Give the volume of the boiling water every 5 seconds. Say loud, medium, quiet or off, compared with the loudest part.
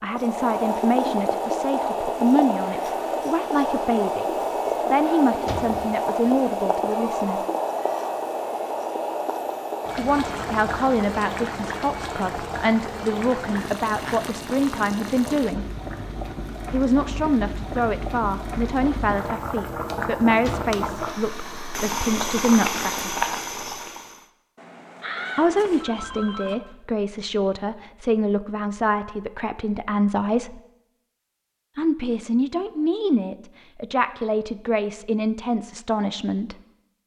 loud, loud, medium, medium, loud, off, off, off.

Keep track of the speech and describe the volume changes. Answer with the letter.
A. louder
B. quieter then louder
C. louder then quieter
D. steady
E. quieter
D.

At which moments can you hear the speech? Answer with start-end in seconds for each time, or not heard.
0.0-7.5, 9.9-15.7, 16.7-23.1, 25.4-30.6, 31.8-36.5.